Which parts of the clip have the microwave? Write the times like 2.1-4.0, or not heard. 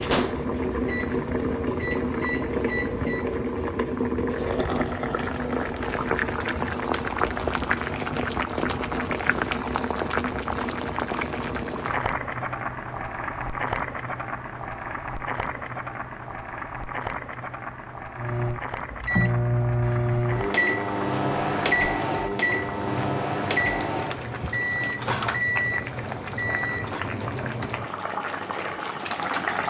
0.0-3.2, 18.1-27.1.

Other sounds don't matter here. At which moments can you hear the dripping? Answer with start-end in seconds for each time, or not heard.
not heard.